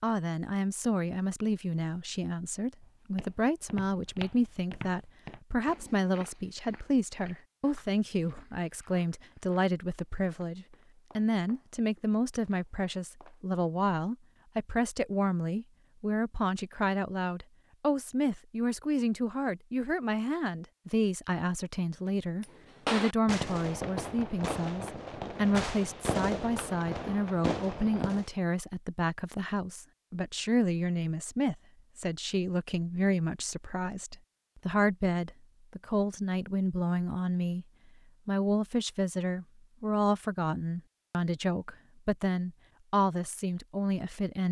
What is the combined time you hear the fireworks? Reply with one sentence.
The fireworks can be heard for 6 seconds in total.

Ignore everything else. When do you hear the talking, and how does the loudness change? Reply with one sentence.
You can hear the talking from 0.0 to 37.6 s, at a steady volume; and from 38.2 to 44.4 s, at a steady volume.